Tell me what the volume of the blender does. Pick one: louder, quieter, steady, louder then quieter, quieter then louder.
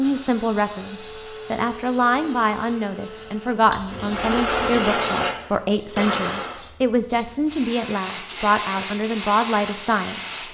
louder.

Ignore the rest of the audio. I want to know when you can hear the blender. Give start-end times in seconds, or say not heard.
0.0-6.6.